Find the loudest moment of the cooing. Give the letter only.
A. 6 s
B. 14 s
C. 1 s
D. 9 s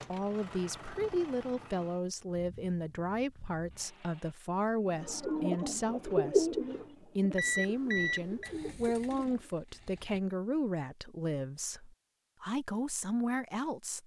A.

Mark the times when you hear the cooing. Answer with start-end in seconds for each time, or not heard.
4.9-9.3.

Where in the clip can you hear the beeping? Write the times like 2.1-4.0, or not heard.
7.3-8.5.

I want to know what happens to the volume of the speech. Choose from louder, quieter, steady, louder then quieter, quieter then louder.
steady.